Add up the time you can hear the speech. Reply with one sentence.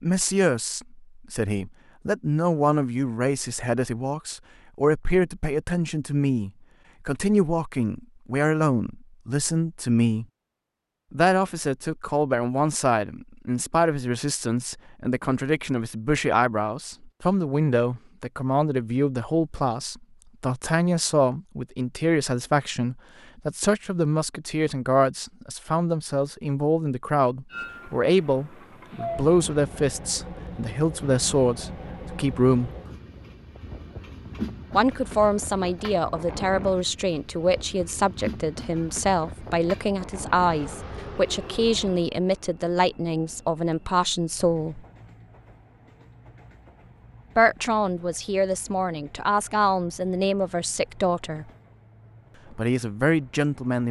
You can hear the speech for 47 seconds altogether.